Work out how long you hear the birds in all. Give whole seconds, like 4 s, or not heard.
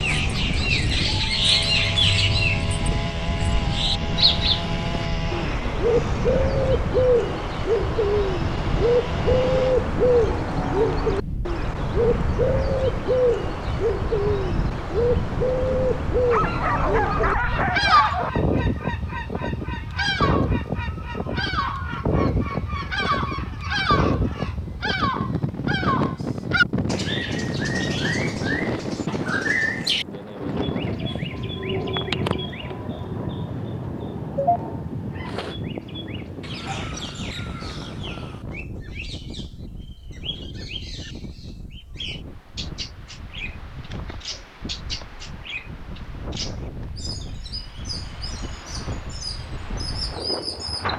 51 s.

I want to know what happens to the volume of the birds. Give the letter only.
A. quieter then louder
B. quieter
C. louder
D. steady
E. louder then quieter
B.